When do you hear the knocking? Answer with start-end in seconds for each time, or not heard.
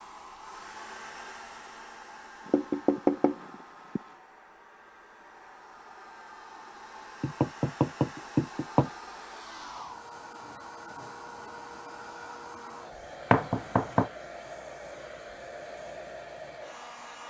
2.5-4.0, 7.2-8.9, 13.3-14.1.